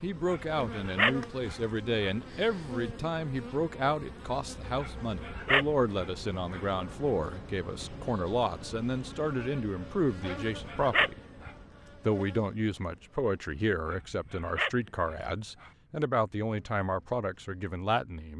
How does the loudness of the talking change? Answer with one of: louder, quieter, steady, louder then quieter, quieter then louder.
steady.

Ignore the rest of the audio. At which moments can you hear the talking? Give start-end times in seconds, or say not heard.
0.0-11.2, 12.1-18.3.